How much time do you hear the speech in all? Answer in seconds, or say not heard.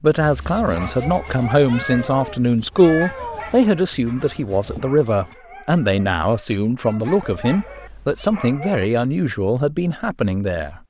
11 s.